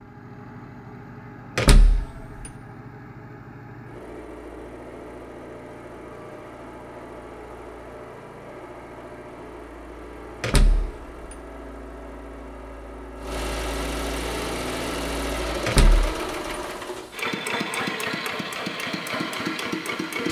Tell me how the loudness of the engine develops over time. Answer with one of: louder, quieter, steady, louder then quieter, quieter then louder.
louder.